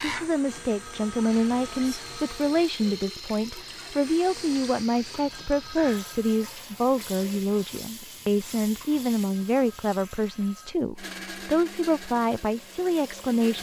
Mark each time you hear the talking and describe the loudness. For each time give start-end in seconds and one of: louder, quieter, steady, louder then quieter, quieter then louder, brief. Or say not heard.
0.0-13.5 steady.